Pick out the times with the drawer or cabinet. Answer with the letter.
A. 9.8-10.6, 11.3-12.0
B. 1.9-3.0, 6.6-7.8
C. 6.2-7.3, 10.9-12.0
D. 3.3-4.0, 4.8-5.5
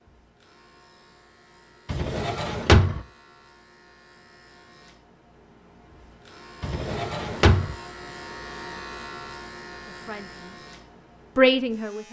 B.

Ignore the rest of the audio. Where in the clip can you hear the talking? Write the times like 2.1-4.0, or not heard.
9.8-10.6, 11.3-12.0.